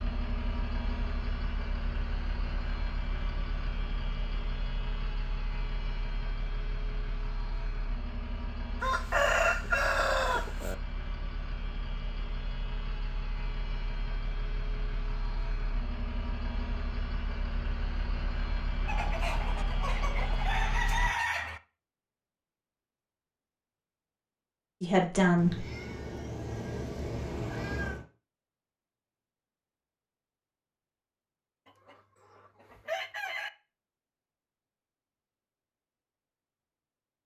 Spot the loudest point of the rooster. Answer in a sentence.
The loudest moment of the rooster is at 9 seconds.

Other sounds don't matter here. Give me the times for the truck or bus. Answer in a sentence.
You can hear the truck or bus from 0.0 to 21.1 s.